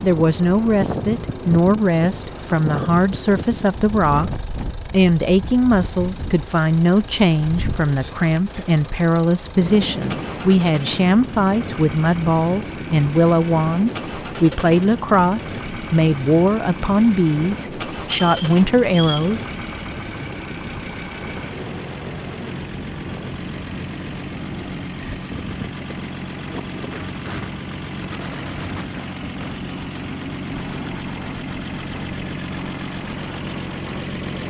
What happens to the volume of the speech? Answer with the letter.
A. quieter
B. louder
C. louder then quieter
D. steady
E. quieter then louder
D.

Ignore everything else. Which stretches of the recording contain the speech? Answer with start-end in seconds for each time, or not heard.
0.0-4.3, 4.9-19.4.